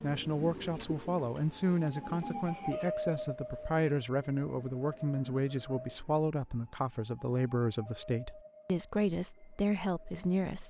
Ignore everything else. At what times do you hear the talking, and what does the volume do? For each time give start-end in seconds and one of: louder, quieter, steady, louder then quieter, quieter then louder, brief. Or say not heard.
0.0-10.6 steady.